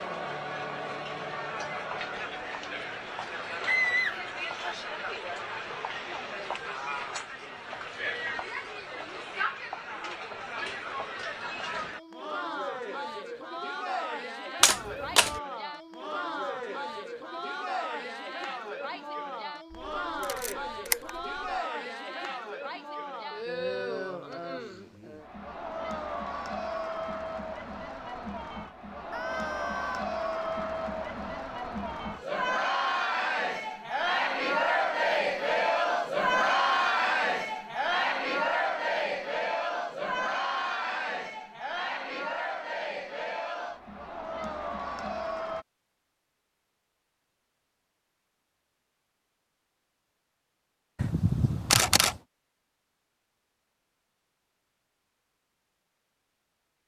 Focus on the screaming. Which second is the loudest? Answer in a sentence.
The loudest moment of the screaming is at 4 seconds.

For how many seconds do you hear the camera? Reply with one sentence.
You can hear the camera for 3 seconds altogether.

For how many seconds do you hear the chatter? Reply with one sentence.
The chatter can be heard for 46 seconds in total.